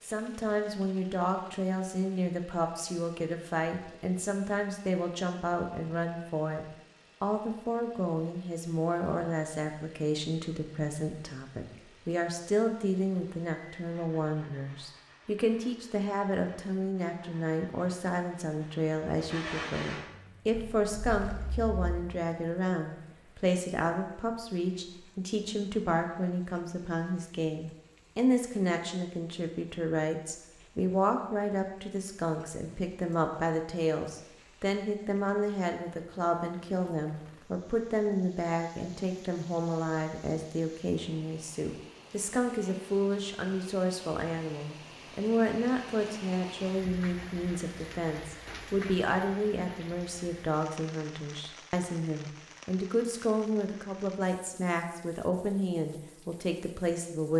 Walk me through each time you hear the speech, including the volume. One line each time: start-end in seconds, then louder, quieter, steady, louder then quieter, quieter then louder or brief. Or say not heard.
0.0-57.3 steady.